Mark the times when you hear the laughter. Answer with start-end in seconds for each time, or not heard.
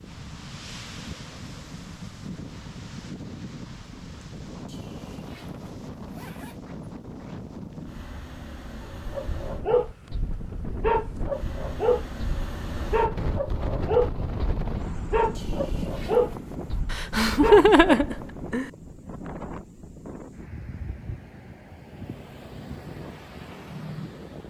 16.9-18.7.